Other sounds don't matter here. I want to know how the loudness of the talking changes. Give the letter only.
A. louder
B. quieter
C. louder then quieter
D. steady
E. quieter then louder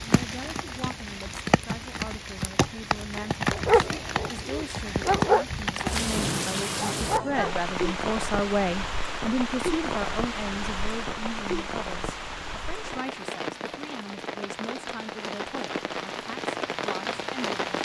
C.